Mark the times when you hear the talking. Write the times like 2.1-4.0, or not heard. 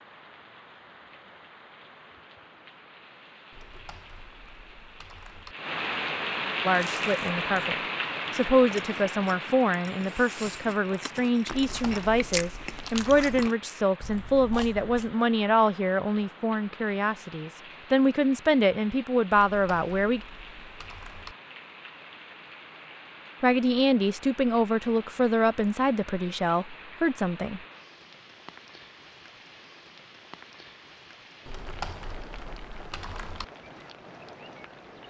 6.7-7.8, 8.3-20.2, 23.4-27.6.